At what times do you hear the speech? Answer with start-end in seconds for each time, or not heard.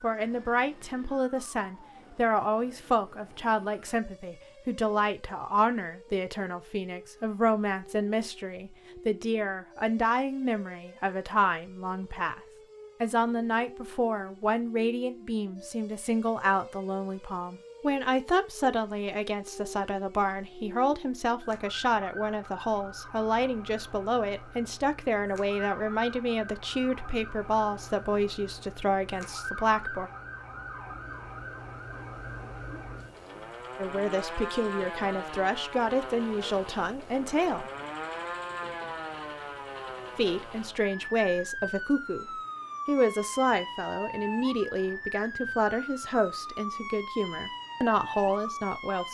0.0-12.4, 13.0-30.1, 33.8-37.7, 40.1-49.0.